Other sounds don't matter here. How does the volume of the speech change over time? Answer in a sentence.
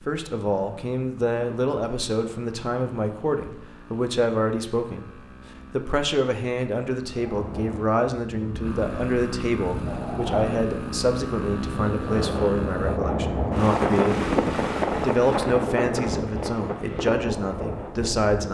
The volume of the speech stays about the same.